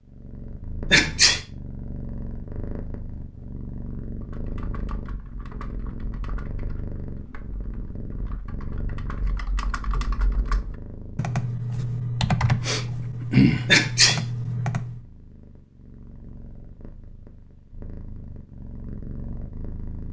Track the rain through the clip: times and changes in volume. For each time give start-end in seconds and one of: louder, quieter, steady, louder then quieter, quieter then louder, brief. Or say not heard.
not heard.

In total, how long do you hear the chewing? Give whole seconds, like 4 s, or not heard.
not heard.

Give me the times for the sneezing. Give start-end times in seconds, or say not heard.
0.9-1.4, 13.7-14.2.